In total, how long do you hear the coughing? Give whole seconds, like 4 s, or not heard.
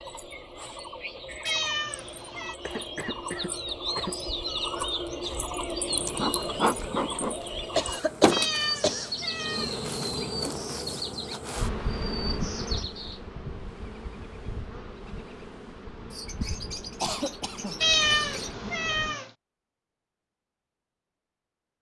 4 s.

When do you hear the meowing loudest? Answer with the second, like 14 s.
18 s.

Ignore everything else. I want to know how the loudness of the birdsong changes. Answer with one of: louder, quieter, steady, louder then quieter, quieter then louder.
louder then quieter.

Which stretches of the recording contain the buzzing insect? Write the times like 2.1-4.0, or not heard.
6.0-19.1.